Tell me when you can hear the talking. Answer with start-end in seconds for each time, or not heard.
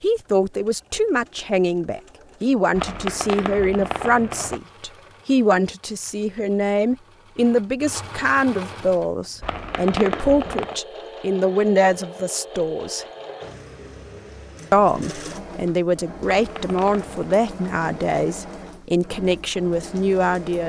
0.0-13.1, 14.7-20.6.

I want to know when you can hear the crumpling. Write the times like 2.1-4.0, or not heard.
2.7-4.6, 9.4-10.8, 16.3-17.3.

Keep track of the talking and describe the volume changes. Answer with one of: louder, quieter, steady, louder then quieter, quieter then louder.
steady.